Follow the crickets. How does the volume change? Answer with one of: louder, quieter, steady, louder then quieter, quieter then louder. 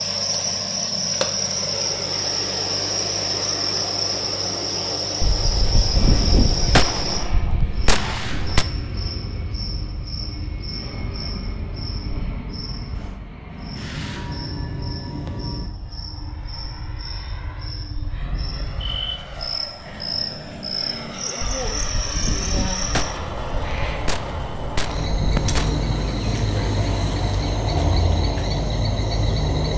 quieter then louder.